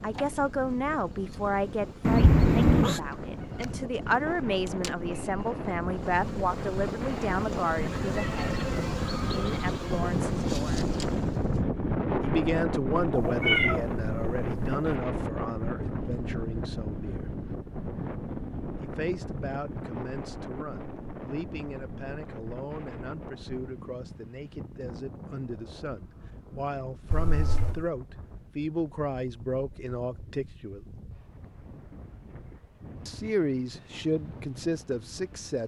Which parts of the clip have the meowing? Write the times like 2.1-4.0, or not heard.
2.0-3.0, 13.2-14.8, 27.1-27.9.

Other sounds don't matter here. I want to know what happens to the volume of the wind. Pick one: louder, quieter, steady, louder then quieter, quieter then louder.
louder then quieter.